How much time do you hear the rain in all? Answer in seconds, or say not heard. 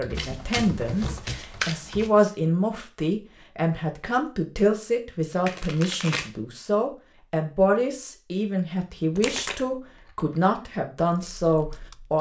not heard.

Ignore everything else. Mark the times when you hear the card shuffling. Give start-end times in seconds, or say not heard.
0.1-2.1, 5.5-6.3, 8.9-9.6.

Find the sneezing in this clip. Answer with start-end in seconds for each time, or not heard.
not heard.